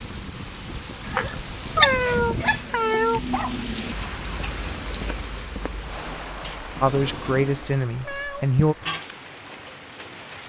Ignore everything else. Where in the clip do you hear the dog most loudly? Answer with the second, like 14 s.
2 s.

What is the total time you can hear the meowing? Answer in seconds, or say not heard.
3 s.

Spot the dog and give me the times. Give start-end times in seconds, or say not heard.
1.8-3.6.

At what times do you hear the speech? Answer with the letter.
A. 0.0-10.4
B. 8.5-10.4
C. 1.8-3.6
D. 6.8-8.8
D.